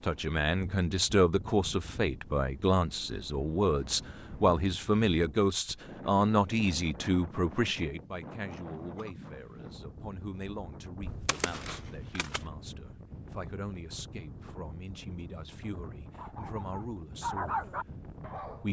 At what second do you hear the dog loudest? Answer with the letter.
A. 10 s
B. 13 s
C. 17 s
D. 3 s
C.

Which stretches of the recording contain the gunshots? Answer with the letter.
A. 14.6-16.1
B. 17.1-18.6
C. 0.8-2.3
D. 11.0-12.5
D.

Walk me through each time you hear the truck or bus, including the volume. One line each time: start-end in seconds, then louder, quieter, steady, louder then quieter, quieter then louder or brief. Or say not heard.
not heard.